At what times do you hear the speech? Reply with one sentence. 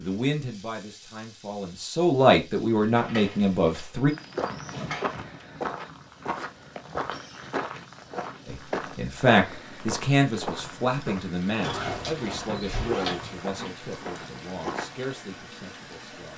The speech can be heard from 0.0 to 4.1 s and from 8.4 to 16.3 s.